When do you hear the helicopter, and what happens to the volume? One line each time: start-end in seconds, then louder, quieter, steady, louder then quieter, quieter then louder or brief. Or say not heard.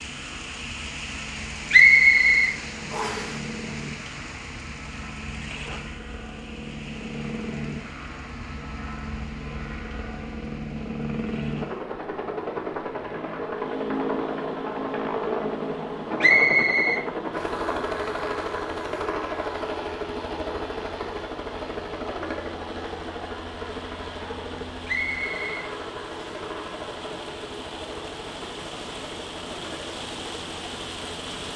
0.0-31.5 louder then quieter.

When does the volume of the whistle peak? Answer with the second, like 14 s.
2 s.